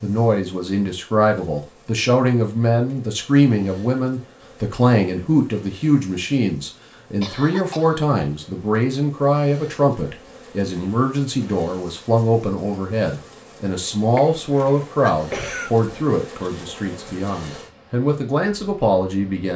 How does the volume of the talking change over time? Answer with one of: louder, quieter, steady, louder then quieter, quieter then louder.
steady.